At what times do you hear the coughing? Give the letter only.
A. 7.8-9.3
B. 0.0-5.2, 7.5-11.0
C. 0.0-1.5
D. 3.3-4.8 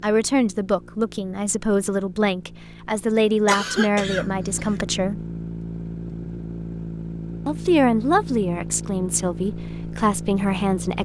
D.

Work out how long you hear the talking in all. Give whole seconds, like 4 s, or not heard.
9 s.